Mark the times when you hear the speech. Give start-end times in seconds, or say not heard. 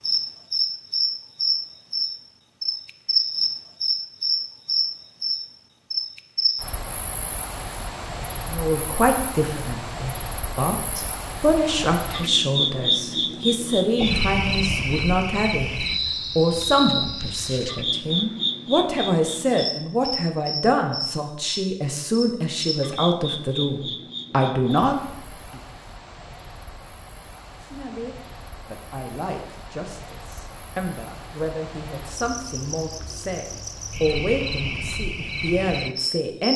8.4-25.6, 27.6-36.5.